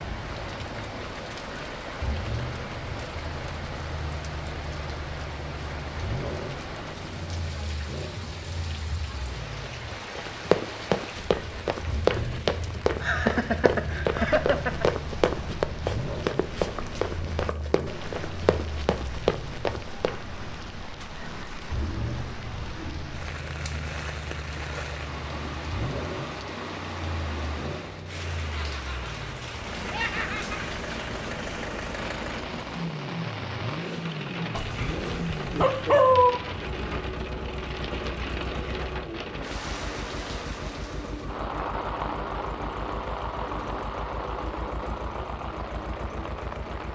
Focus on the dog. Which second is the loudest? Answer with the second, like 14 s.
36 s.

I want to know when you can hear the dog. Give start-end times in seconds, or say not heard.
34.5-36.4.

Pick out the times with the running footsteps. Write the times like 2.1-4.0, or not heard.
10.2-20.2.